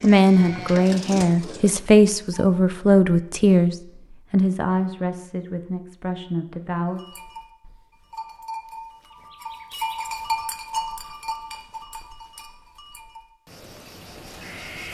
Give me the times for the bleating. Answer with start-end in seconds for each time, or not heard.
0.0-2.5, 7.0-14.8.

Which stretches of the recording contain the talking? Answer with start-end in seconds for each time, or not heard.
0.0-7.0.